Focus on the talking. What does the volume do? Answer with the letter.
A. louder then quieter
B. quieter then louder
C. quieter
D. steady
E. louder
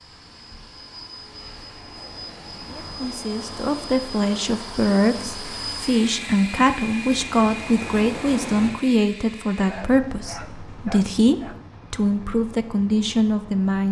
D.